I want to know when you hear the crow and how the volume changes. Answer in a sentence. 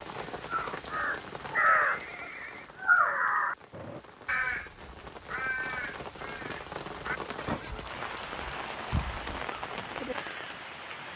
The crow can be heard from 0.2 to 10.4 s, getting quieter.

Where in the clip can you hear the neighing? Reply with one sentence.
The neighing can be heard from 1.8 to 2.7 s and from 7.3 to 9.4 s.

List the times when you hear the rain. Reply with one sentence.
The rain can be heard from 0.0 to 11.1 s.